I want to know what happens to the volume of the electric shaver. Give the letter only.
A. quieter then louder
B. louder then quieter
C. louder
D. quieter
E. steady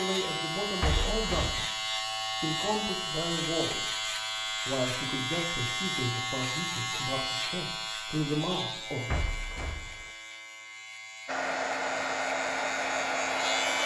D.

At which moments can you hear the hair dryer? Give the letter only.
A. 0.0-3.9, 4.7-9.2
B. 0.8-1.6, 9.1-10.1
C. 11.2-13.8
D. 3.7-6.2
C.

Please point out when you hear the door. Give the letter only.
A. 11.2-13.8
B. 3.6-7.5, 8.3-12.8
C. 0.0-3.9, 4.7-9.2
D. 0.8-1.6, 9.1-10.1
D.